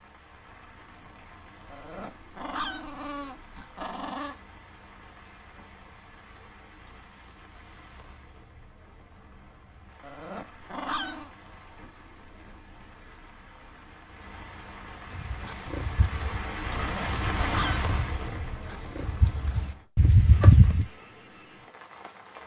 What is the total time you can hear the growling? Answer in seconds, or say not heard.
5 s.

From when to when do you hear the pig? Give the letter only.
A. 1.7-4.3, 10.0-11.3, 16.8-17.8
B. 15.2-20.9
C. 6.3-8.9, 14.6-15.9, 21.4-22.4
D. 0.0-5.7
B.